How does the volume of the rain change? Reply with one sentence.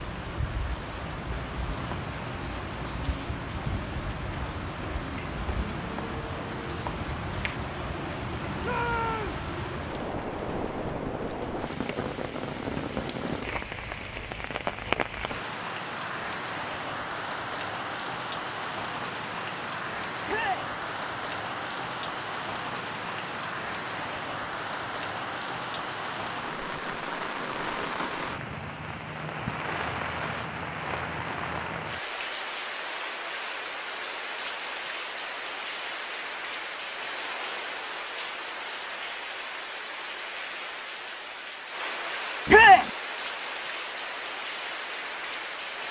The volume of the rain stays about the same.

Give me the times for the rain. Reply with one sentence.
The rain can be heard from 0.0 to 45.8 s.